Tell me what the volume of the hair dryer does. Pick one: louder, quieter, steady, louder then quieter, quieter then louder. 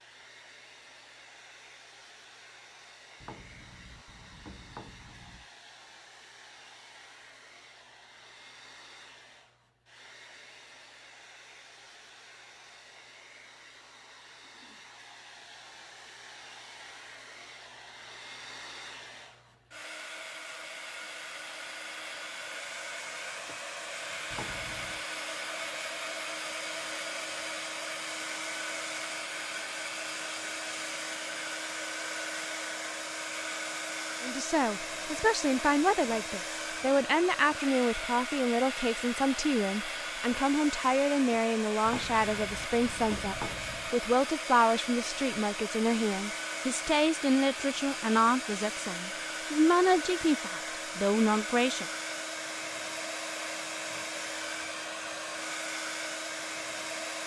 louder.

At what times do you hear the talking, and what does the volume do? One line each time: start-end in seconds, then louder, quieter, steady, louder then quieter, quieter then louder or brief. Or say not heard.
34.2-51.9 steady.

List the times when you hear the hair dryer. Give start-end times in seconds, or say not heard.
0.0-57.2.